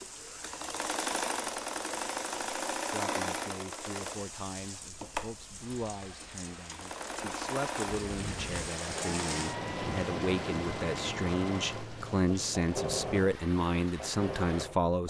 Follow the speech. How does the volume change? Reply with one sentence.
The loudness of the speech goes up.